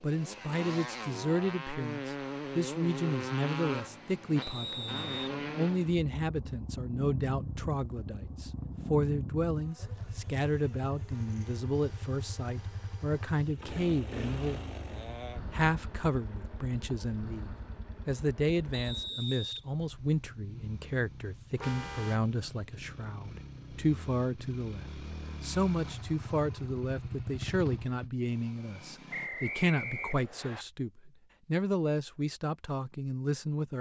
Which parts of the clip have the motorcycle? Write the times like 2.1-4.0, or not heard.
0.0-29.3.